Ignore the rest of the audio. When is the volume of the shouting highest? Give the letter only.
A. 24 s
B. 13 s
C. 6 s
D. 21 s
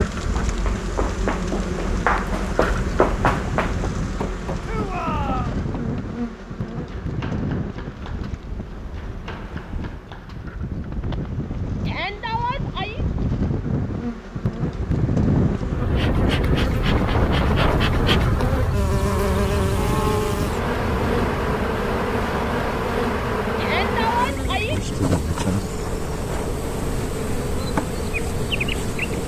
A.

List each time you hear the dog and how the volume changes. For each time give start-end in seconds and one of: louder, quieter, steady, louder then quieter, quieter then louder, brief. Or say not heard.
not heard.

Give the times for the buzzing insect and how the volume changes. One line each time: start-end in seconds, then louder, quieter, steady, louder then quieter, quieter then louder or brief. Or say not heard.
0.0-29.2 quieter then louder.